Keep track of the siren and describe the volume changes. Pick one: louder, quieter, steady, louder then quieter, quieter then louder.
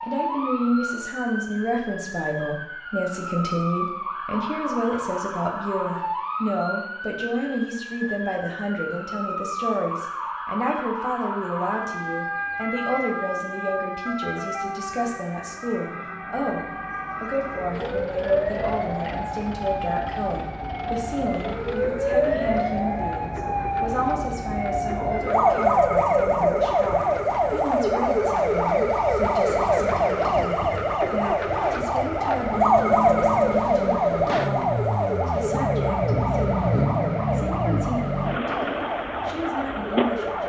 louder.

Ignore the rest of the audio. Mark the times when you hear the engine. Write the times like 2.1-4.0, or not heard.
17.7-40.4.